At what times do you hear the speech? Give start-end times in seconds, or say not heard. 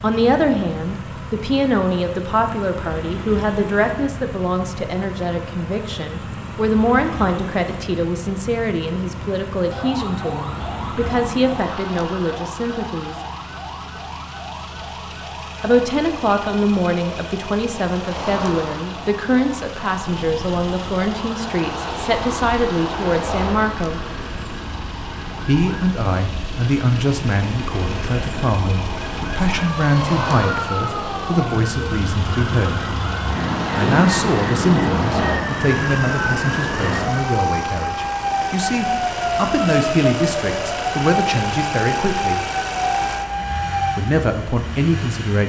0.0-13.2, 15.6-24.1, 25.4-32.9, 33.8-42.4, 44.0-45.4.